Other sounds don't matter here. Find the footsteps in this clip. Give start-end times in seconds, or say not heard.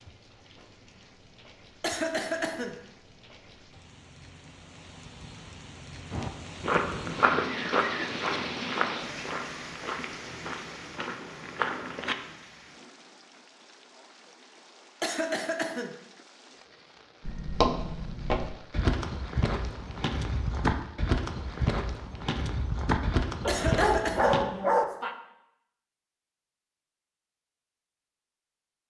6.1-12.2, 17.2-24.4.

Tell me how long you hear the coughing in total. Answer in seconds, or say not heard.
3 s.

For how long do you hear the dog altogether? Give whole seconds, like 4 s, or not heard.
2 s.